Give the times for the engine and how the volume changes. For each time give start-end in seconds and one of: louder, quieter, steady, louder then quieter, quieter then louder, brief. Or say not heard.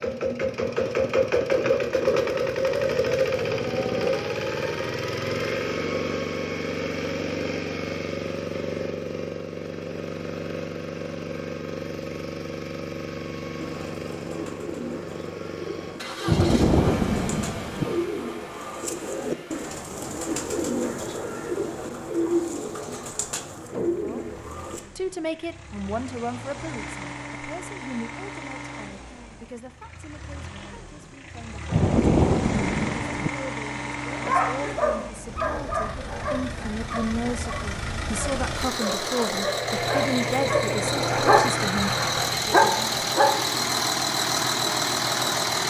0.0-45.6 quieter then louder.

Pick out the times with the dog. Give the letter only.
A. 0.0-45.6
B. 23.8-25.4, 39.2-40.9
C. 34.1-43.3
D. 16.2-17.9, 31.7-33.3
C.